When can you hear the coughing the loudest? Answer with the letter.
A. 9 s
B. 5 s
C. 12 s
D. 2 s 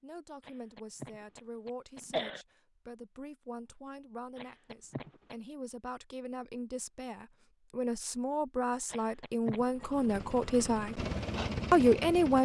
D.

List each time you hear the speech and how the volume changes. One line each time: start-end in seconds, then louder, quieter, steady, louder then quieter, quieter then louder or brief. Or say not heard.
0.0-11.0 louder
11.7-12.4 brief.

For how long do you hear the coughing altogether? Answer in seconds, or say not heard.
4 s.